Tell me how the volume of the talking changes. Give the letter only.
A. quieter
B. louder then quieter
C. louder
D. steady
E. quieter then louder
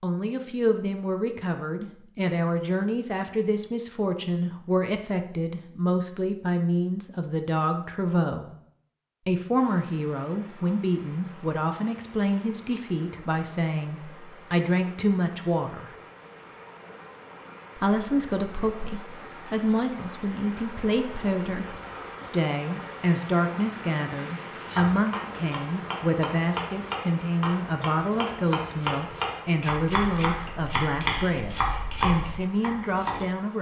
D.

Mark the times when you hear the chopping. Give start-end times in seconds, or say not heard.
24.6-33.2.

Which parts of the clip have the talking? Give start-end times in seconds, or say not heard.
0.0-8.5, 9.2-15.9, 17.8-33.5.